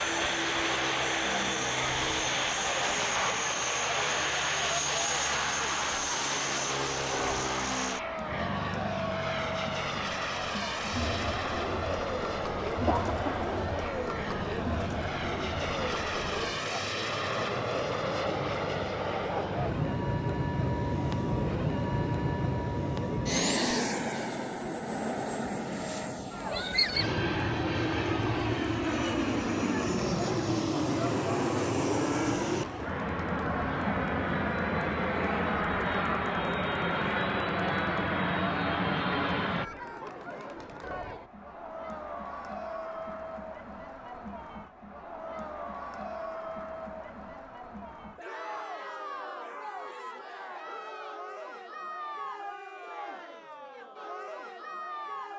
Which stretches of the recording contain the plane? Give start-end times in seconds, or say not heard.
0.0-39.6.